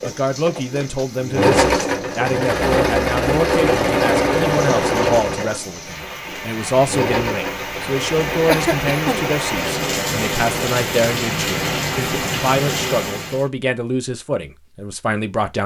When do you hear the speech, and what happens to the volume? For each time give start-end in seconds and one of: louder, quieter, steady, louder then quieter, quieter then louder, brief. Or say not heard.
0.0-15.6 steady.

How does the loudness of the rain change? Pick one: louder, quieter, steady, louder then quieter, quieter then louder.
louder.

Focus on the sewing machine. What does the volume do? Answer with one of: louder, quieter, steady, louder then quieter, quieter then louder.
quieter.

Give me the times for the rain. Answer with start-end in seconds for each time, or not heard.
0.0-13.4.